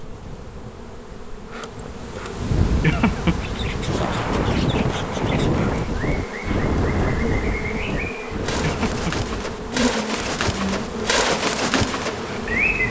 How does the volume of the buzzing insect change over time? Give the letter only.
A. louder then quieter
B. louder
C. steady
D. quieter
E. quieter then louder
B.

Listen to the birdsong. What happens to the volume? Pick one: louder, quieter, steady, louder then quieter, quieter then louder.
louder.